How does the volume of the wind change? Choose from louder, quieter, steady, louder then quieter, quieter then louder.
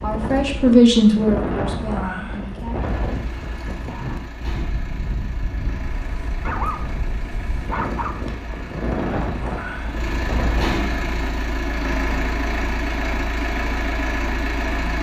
quieter then louder.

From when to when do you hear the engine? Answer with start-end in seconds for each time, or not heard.
2.7-14.9.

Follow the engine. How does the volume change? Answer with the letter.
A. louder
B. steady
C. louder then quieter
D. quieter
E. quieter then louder
A.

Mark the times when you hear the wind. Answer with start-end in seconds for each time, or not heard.
0.0-11.1.